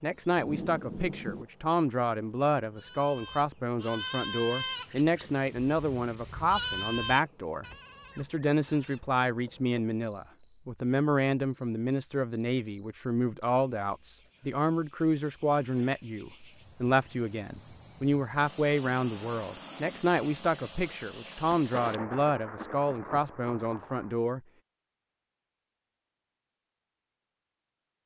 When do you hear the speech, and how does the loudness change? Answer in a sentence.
The speech can be heard from 0.0 to 24.4 s, at a steady volume.